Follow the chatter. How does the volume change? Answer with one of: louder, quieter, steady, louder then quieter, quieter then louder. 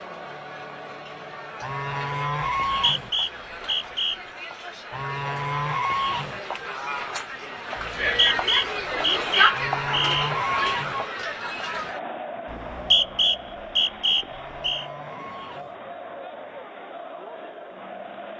louder then quieter.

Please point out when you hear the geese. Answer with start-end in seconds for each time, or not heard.
1.6-3.1, 4.9-6.4, 9.5-11.0, 14.2-15.8.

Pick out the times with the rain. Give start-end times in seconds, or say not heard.
not heard.